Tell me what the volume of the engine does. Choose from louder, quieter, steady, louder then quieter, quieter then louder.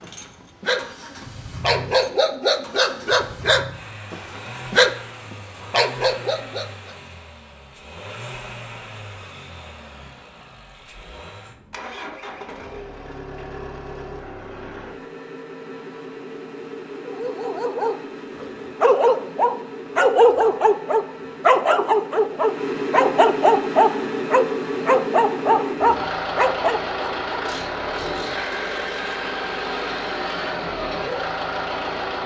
louder.